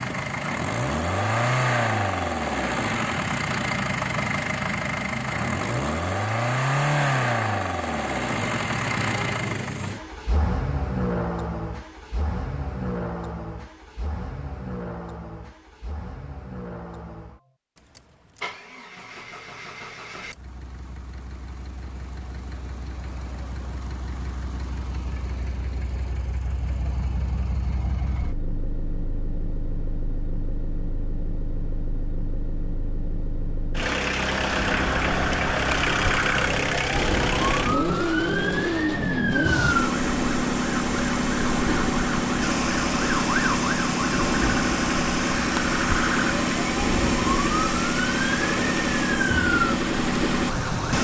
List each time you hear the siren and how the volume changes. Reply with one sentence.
The siren can be heard from 34.4 to 50.9 s, at a steady volume.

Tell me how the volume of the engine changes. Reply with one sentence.
The loudness of the engine goes down, then up.